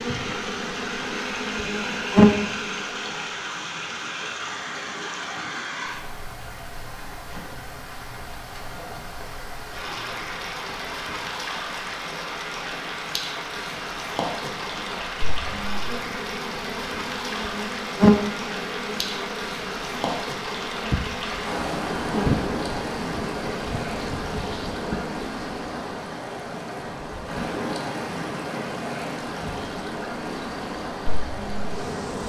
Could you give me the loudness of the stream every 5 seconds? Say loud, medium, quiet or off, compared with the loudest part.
loud, medium, loud, loud, loud, loud, loud.